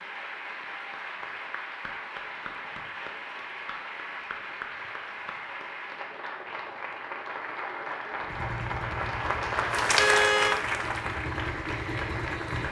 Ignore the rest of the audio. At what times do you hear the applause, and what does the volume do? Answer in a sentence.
You can hear the applause from 0.0 to 12.6 s, getting louder.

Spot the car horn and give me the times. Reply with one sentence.
You can hear the car horn from 9.9 to 10.6 s.